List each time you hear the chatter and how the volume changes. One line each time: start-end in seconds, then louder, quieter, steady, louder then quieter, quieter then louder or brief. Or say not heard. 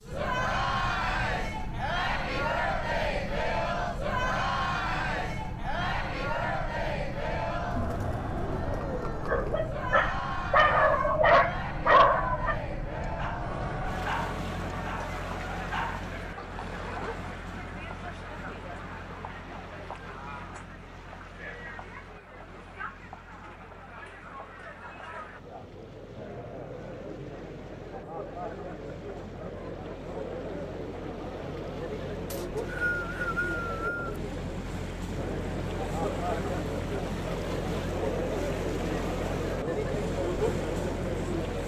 0.1-41.6 quieter then louder.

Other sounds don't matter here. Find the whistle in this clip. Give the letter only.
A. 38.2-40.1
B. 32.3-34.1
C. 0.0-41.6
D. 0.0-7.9
B.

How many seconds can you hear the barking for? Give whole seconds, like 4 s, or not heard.
8 s.